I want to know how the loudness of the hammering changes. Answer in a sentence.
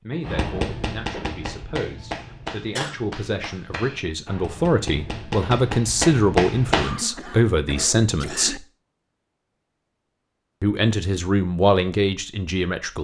The loudness of the hammering goes down, then up.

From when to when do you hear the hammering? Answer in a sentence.
You can hear the hammering from 0.2 to 7.0 s.